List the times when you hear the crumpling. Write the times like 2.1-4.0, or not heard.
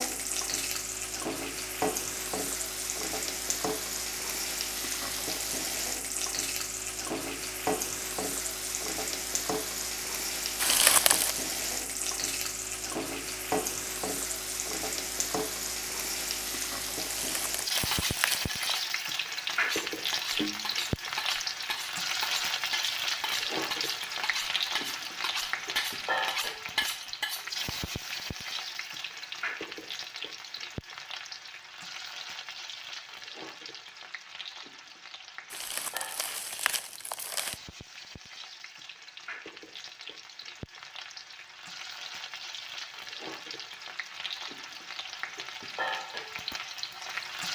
10.6-11.3, 17.1-18.6, 35.5-37.6.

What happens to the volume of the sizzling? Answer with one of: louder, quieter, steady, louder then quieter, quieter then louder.
quieter.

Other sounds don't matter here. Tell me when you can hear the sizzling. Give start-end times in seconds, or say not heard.
0.0-47.5.